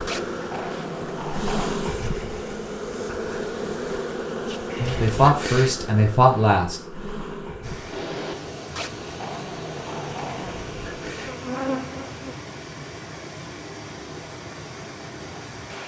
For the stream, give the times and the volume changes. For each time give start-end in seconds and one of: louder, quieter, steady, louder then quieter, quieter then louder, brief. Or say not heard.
7.6-15.8 steady.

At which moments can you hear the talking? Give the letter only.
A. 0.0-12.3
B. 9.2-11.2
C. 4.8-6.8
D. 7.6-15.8
C.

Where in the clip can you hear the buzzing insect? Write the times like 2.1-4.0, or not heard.
0.0-12.3.